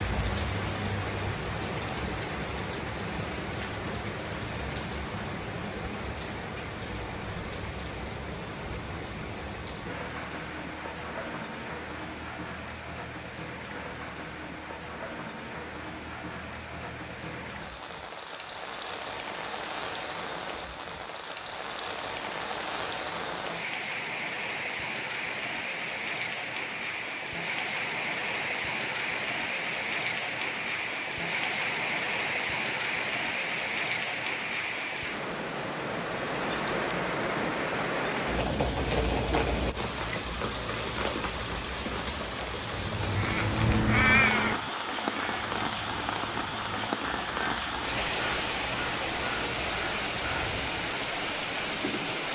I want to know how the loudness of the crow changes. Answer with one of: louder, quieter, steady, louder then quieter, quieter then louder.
quieter.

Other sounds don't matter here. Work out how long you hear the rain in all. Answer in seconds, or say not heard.
52 s.